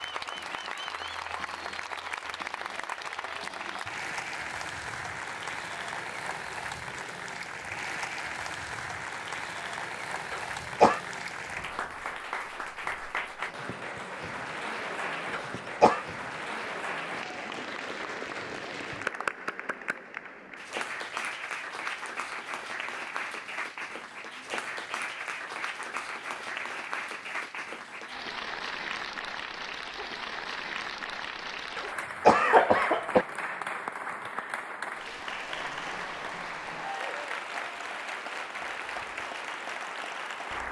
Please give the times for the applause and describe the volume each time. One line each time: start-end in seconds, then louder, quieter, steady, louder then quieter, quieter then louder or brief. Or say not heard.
0.0-40.6 steady.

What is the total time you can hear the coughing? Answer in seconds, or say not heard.
3 s.